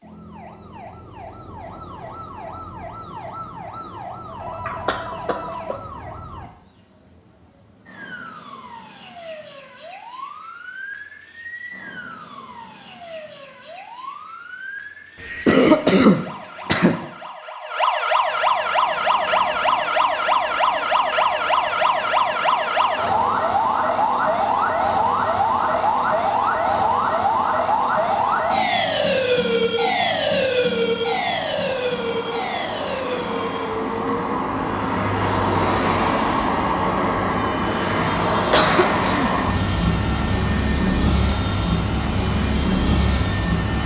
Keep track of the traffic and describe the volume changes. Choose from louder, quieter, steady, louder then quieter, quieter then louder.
louder.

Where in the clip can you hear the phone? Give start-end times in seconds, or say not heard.
4.2-5.8.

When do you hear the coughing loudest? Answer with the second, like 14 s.
16 s.